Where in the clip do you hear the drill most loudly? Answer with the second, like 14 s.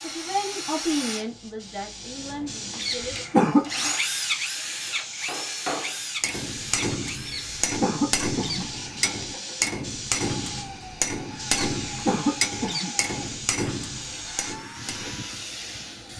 4 s.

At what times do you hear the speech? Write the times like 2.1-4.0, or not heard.
0.0-3.2.